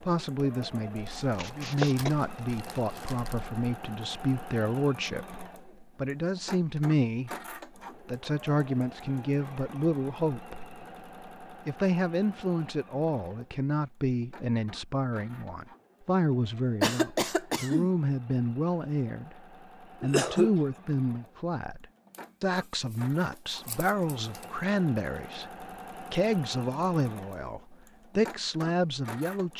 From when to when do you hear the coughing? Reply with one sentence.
The coughing can be heard from 1.4 to 2.1 s, from 16.8 to 17.9 s and from 20.0 to 20.6 s.